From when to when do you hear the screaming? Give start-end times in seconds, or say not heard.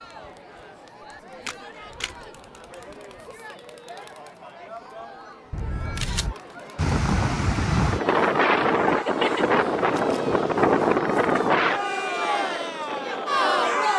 not heard.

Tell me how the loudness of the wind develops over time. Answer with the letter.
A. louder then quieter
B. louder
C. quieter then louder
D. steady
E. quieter
E.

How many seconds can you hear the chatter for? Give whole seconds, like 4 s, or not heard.
14 s.